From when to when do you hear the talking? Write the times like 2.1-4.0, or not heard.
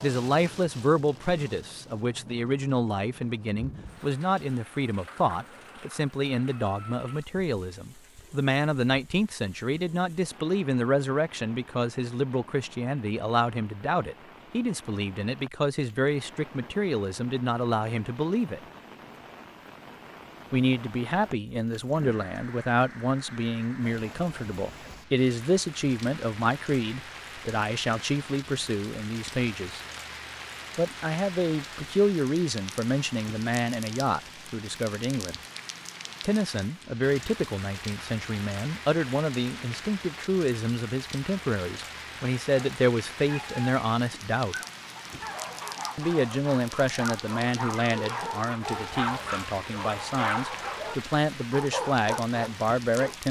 0.0-18.6, 20.5-29.8, 30.8-35.4, 36.2-44.5, 46.0-53.2.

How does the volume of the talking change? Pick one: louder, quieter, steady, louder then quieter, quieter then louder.
steady.